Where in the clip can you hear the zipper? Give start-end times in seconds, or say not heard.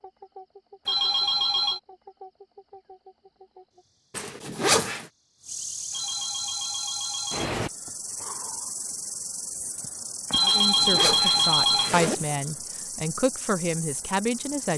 4.2-5.0, 10.4-12.2.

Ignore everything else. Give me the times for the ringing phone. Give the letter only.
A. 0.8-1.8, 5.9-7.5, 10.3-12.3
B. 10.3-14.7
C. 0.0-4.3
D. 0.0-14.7
A.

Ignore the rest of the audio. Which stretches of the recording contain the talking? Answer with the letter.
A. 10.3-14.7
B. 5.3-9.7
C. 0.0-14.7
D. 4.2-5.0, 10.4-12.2
A.